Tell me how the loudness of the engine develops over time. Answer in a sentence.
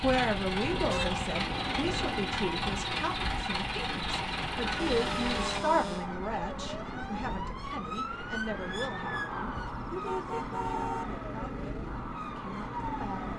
The loudness of the engine stays about the same.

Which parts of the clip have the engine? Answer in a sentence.
You can hear the engine from 0.0 to 5.6 s.